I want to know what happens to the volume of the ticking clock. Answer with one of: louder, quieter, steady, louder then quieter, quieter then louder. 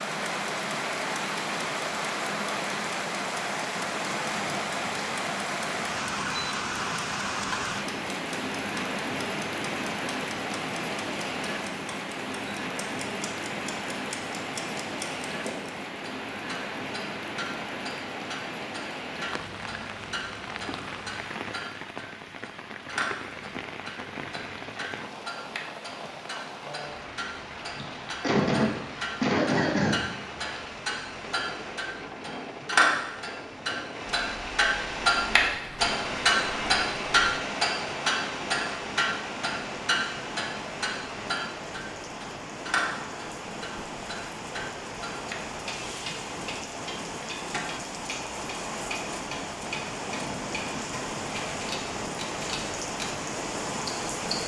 louder then quieter.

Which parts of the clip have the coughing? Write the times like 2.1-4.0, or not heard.
27.8-30.0.